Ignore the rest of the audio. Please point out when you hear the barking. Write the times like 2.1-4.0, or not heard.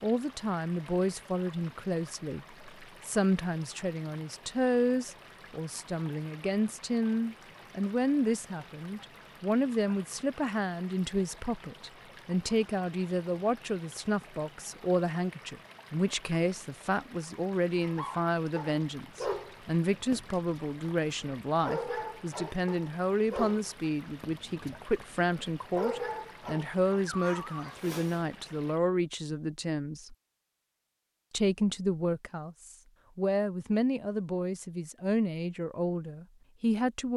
17.8-28.2.